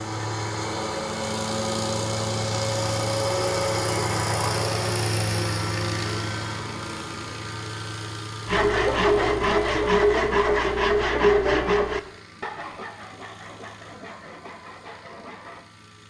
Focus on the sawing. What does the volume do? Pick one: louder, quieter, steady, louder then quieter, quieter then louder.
quieter.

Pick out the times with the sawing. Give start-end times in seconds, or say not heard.
8.4-15.7.